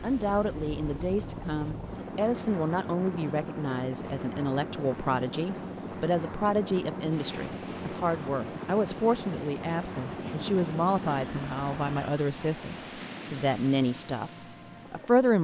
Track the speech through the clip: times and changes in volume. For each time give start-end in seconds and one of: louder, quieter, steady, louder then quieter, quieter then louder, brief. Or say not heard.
0.0-14.3 steady
14.9-15.3 brief.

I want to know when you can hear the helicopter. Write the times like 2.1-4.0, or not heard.
0.0-15.3.